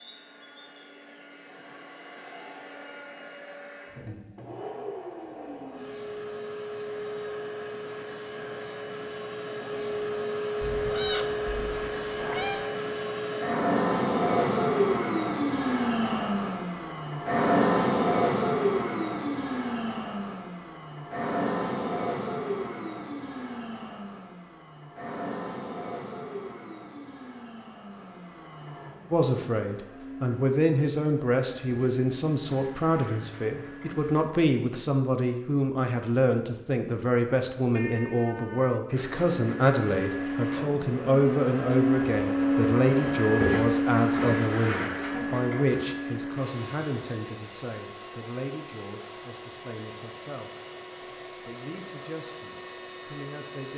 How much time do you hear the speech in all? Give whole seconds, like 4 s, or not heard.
24 s.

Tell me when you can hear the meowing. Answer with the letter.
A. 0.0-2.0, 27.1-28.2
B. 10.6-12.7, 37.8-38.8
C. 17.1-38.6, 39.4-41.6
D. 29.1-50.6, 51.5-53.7
B.